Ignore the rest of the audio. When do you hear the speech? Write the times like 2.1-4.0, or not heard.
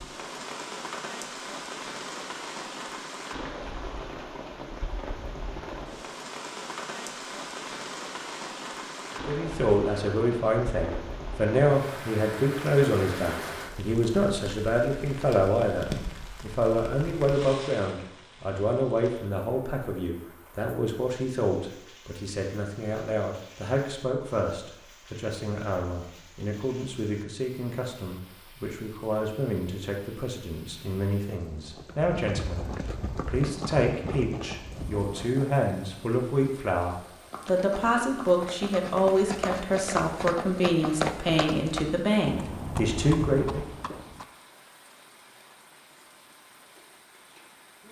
9.2-43.6.